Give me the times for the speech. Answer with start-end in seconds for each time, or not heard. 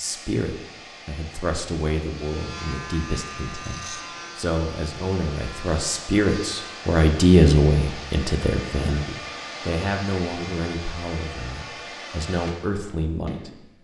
0.0-13.6.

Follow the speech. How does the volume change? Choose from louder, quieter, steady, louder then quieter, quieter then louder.
louder then quieter.